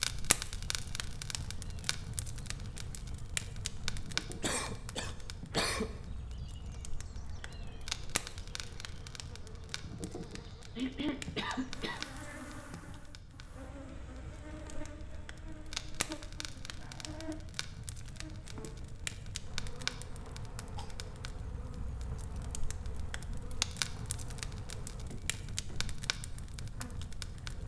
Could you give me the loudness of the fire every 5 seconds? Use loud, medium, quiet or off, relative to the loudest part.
loud, medium, medium, loud, loud, medium.